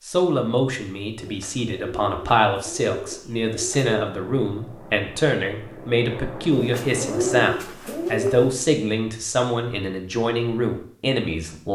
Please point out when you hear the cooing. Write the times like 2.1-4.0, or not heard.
1.2-4.0, 6.5-8.6.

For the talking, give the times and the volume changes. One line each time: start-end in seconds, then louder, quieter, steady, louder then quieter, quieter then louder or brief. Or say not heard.
0.1-11.6 steady.